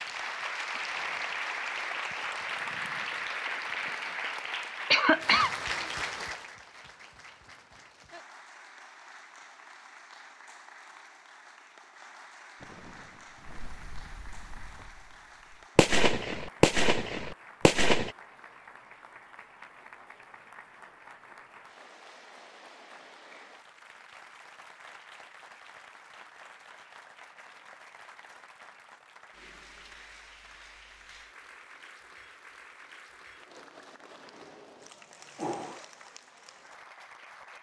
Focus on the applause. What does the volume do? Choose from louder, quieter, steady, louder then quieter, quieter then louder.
quieter.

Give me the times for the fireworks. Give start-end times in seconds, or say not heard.
13.4-14.7, 15.8-18.1.